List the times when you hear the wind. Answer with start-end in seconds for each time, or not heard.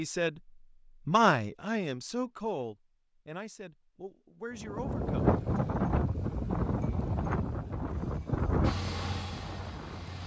4.5-10.2.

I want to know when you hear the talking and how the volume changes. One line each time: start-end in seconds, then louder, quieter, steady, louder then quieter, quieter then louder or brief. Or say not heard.
0.0-5.3 quieter.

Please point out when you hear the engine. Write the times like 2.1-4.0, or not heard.
8.6-10.2.